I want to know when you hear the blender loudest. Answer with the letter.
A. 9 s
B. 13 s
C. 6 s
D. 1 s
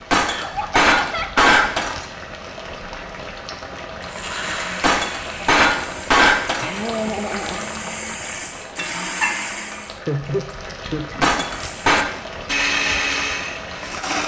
B.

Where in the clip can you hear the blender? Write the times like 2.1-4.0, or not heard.
4.0-10.0, 11.6-14.2.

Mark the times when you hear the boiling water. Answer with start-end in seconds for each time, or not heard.
0.0-14.2.